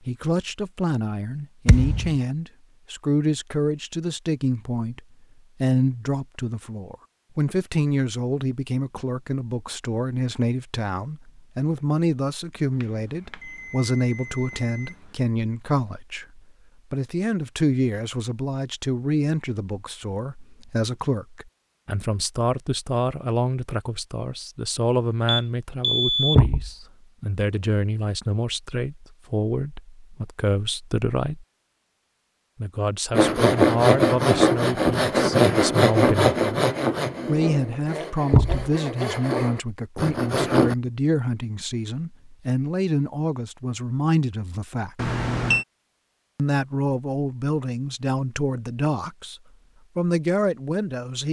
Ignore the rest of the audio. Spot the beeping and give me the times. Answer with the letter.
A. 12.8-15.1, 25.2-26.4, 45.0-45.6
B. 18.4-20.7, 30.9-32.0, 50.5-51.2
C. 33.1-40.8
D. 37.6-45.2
A.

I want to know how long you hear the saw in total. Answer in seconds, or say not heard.
8 s.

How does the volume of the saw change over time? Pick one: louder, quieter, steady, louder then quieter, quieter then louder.
quieter then louder.